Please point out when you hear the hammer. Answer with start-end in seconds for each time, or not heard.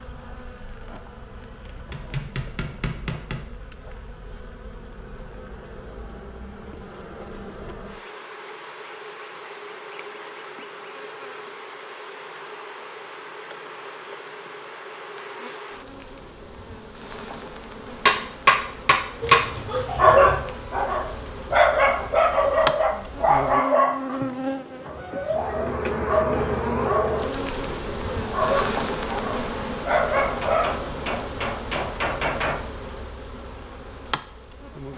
1.9-3.5, 18.1-19.4, 30.2-32.6.